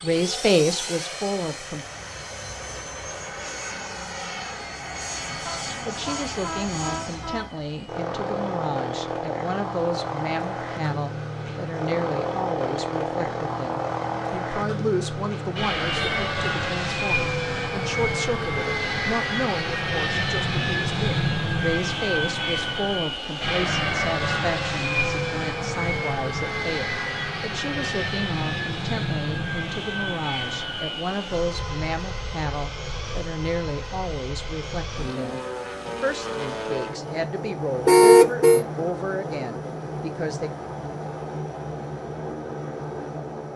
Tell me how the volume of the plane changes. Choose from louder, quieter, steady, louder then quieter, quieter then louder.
louder then quieter.